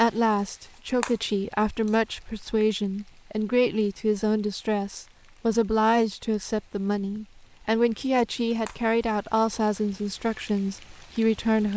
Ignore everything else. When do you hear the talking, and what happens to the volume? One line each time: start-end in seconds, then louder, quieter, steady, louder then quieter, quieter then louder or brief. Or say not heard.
0.0-11.7 steady.